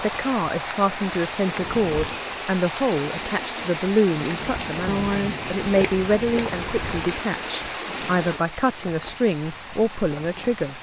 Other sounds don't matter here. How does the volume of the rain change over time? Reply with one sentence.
The loudness of the rain goes down.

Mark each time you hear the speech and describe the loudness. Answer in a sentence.
The speech can be heard from 0.0 to 10.7 s, at a steady volume.